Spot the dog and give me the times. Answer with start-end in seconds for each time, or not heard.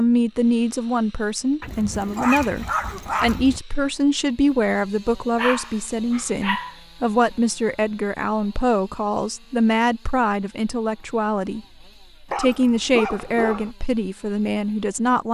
1.6-3.6, 5.3-6.8, 12.3-13.8.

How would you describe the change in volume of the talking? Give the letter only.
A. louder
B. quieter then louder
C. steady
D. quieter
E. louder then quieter
C.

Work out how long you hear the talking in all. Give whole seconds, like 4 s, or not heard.
15 s.